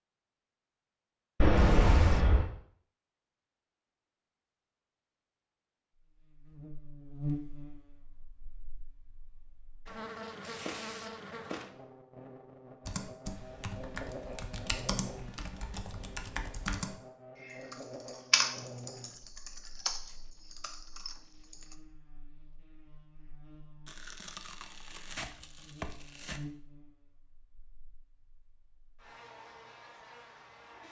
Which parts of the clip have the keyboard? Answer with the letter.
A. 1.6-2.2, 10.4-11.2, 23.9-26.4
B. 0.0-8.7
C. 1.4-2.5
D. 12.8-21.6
D.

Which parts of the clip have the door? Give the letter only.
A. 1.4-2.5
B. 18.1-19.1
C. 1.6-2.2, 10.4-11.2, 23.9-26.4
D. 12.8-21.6
A.